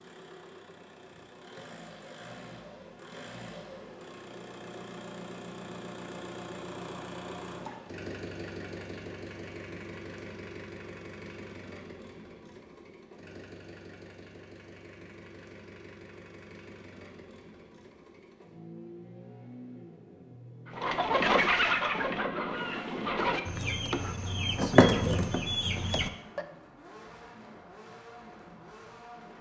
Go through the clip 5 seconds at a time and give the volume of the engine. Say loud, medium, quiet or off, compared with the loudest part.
medium, loud, medium, medium, medium, medium.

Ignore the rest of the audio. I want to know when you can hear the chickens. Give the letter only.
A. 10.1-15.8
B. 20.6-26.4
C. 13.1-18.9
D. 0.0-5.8
B.